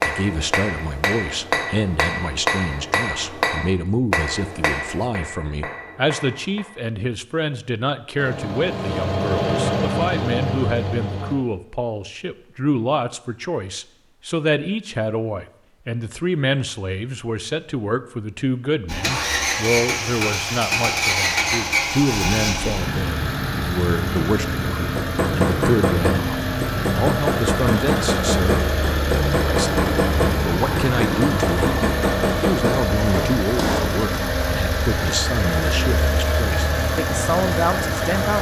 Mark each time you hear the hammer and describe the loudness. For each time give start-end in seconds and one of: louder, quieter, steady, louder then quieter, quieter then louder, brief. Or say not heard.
0.0-6.7 quieter
24.9-34.0 steady.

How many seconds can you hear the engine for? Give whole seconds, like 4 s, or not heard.
23 s.